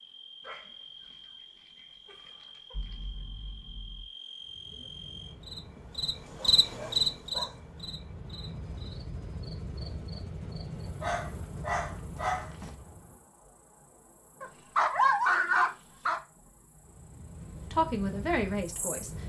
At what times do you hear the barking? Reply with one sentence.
The barking can be heard from 0.4 to 3.0 s, from 6.2 to 7.6 s, from 11.0 to 12.8 s and from 14.4 to 16.2 s.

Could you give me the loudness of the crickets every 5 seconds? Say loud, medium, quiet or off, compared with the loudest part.
quiet, loud, quiet, quiet.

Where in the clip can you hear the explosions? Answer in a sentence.
You can hear the explosions from 2.7 to 4.0 s.